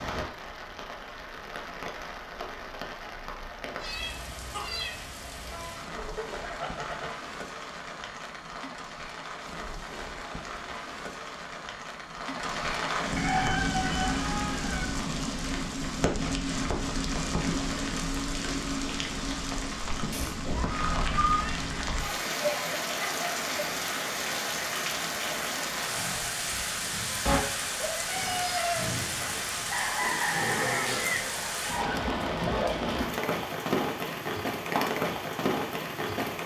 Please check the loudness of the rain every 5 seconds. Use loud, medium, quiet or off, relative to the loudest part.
medium, medium, loud, loud, loud, loud, loud, loud.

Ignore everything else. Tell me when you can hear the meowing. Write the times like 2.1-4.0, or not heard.
3.6-5.0, 20.1-21.6, 27.2-28.9.